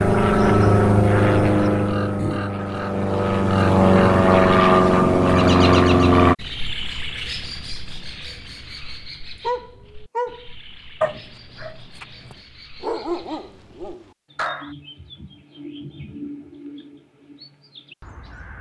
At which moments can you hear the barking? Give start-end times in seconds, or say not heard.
9.4-14.7.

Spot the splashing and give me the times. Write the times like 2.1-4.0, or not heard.
not heard.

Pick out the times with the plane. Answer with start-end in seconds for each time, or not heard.
0.0-6.3.